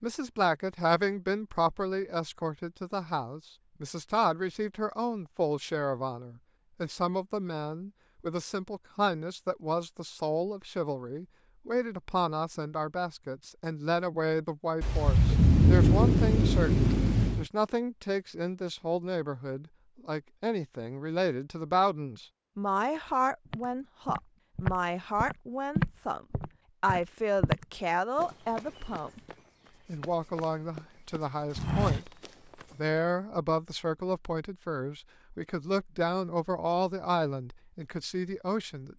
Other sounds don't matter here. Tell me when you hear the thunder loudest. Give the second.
16 s.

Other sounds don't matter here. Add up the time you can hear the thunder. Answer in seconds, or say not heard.
3 s.